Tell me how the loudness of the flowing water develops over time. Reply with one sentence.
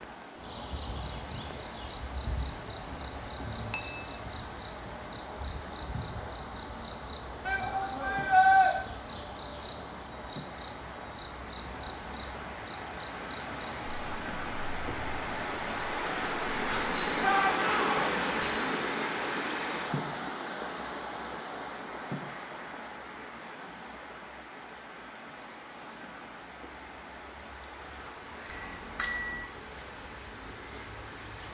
The loudness of the flowing water goes up, then down.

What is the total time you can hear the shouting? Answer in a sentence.
The shouting can be heard for 2 seconds in total.